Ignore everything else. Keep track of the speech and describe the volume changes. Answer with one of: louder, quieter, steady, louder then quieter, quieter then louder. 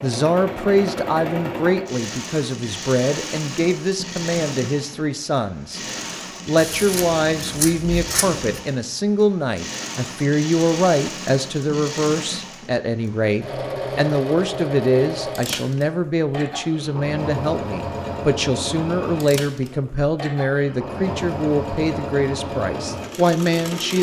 steady.